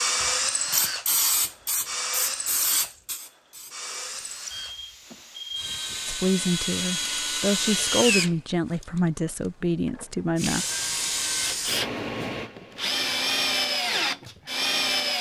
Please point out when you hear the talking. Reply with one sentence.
The talking can be heard from 6.0 to 10.7 s.